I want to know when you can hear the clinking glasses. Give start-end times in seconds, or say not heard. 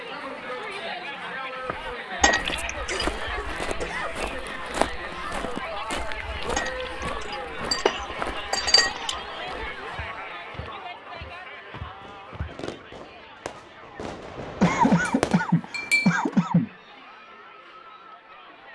2.2-3.0, 6.5-9.2, 14.8-16.2.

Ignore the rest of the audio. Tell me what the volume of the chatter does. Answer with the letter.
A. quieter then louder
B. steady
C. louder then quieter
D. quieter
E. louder
D.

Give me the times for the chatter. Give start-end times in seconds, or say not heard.
0.0-18.6.